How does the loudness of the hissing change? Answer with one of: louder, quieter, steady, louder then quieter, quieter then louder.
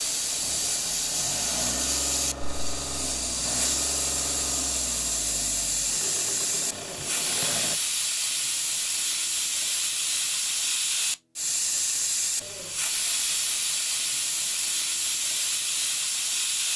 steady.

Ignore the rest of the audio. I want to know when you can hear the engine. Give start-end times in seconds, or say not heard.
0.0-7.8.